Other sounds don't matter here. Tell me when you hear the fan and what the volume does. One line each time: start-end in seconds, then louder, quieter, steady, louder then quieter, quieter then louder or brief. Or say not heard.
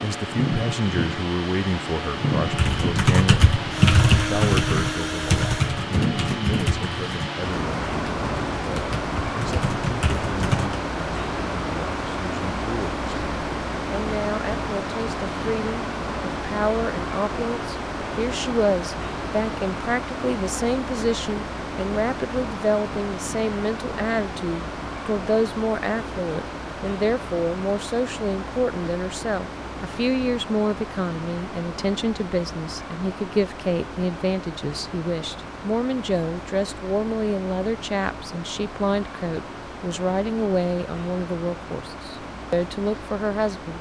0.0-43.7 quieter.